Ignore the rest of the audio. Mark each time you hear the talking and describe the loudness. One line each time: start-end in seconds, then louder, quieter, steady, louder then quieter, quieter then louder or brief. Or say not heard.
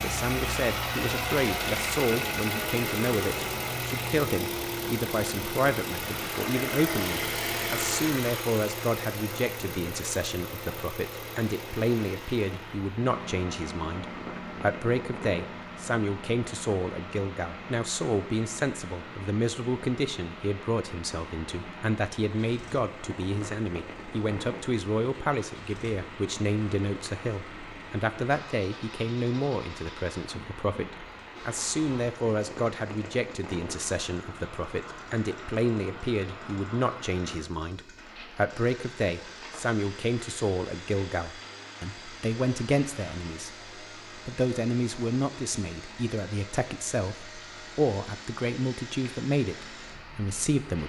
0.0-50.8 steady.